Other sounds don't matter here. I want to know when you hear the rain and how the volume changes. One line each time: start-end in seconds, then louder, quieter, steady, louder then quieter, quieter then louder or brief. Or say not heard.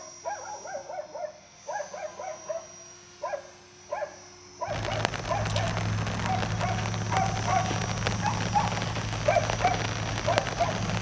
4.7-10.9 steady.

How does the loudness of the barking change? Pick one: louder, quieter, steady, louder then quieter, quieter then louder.
louder.